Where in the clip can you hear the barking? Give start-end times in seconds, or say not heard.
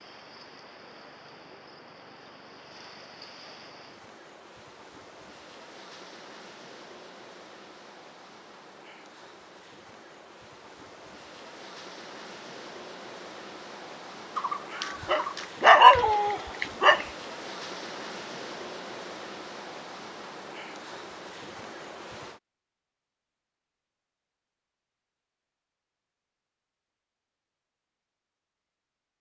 14.3-17.1.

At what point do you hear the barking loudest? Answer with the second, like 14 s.
16 s.